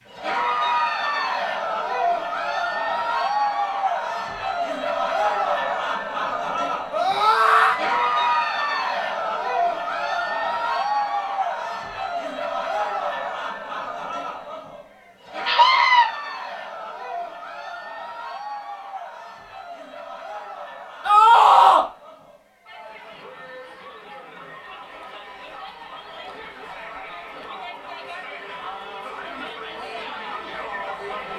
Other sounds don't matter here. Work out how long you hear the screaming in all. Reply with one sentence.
You can hear the screaming for 2 seconds altogether.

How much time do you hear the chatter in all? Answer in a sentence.
The chatter can be heard for 31 seconds in total.